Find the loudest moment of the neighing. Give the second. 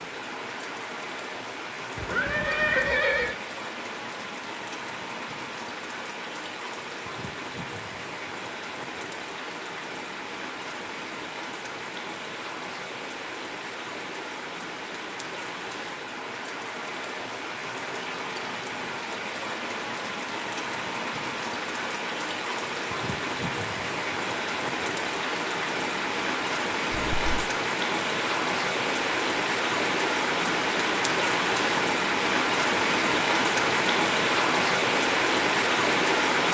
3 s.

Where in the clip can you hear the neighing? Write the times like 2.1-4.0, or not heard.
1.9-3.4, 26.9-27.4.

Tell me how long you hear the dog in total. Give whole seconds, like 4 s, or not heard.
not heard.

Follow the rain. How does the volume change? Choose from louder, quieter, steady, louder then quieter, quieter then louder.
louder.